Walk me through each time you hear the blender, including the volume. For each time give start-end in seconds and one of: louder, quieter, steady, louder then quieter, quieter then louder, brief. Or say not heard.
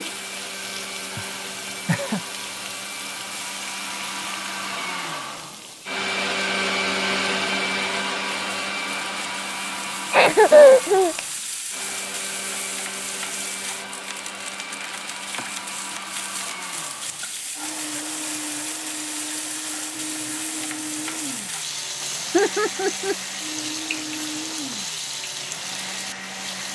0.0-26.7 louder then quieter.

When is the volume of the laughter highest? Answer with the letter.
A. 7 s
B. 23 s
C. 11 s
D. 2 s
C.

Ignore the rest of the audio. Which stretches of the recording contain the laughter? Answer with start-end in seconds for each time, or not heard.
1.1-2.2, 10.1-11.2, 22.3-23.1.